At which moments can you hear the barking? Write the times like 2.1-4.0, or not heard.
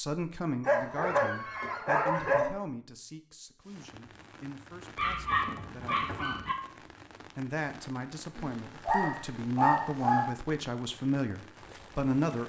0.6-2.5, 5.0-6.5, 8.3-10.2.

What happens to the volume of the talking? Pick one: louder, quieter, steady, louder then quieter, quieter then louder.
quieter then louder.